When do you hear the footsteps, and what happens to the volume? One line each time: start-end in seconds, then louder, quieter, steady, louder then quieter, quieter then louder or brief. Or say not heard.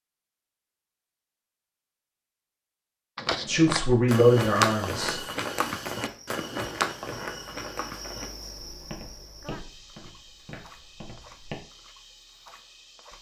3.1-11.6 quieter.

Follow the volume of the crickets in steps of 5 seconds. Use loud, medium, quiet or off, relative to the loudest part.
off, loud, medium.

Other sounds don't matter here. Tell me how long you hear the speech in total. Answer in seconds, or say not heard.
2 s.